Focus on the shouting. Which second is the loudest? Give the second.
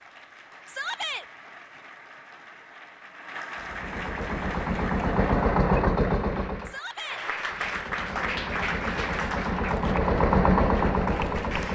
1 s.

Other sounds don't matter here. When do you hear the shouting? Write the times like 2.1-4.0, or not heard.
0.7-1.2, 6.7-7.2.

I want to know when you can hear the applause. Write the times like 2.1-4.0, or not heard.
0.0-11.7.